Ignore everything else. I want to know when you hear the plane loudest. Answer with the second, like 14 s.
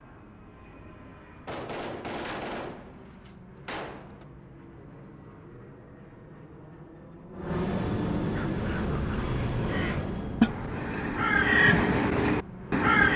8 s.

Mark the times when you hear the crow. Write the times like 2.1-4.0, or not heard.
8.3-13.1.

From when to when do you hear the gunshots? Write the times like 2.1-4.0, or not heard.
1.4-4.2.